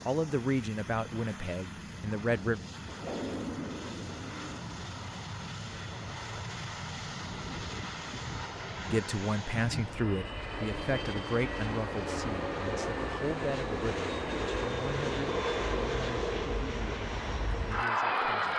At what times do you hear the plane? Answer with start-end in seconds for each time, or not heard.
0.0-18.5.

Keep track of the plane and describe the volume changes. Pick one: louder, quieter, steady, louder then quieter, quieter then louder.
louder.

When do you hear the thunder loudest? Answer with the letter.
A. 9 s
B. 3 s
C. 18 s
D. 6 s
B.